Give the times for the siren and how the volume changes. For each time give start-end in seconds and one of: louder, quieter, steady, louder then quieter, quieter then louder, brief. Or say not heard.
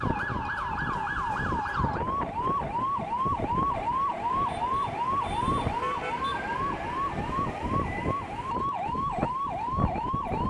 0.0-10.4 steady.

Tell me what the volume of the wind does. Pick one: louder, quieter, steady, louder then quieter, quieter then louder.
steady.